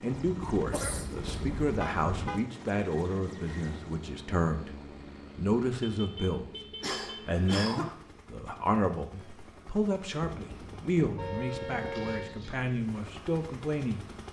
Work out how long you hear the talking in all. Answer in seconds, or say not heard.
13 s.